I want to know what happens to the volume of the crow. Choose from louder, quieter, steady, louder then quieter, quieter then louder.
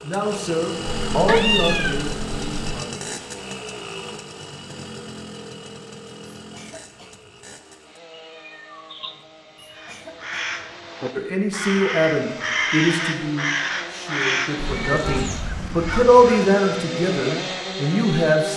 louder then quieter.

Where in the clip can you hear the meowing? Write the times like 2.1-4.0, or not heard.
0.9-2.8, 8.1-9.9, 14.6-16.1.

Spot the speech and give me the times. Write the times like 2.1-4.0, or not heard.
0.0-3.5, 11.2-18.5.